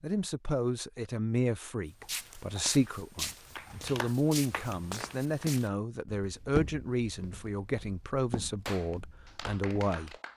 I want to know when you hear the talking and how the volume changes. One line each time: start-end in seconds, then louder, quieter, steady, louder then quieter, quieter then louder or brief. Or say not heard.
0.0-10.3 steady.